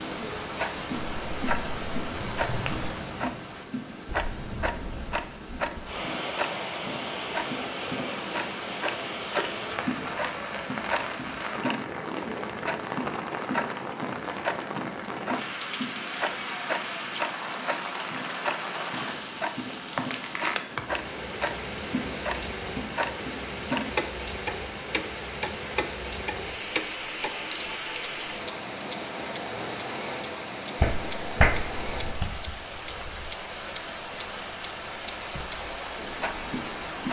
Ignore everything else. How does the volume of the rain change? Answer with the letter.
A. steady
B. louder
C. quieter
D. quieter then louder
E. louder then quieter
A.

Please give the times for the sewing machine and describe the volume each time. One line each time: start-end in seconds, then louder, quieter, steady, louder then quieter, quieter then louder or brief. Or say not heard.
not heard.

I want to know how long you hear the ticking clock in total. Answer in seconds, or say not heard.
37 s.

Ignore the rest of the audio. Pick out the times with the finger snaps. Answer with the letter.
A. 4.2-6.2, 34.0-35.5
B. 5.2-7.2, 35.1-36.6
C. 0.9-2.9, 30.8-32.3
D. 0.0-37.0
C.